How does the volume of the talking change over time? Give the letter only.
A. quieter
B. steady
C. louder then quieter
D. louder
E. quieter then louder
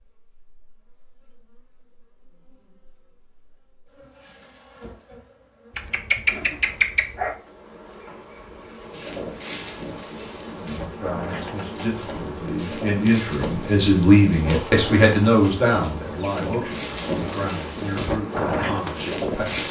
C.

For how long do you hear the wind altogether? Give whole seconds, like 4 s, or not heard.
11 s.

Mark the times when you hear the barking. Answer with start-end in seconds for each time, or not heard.
5.8-7.3.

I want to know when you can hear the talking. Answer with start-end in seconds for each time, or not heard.
10.6-19.6.